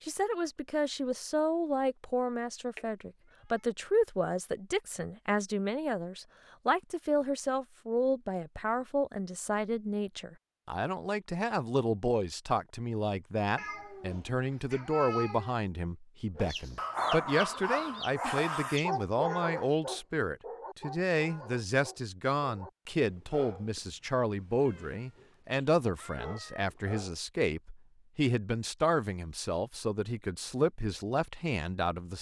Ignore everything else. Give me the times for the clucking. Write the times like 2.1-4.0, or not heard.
16.4-18.9.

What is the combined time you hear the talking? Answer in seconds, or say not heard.
32 s.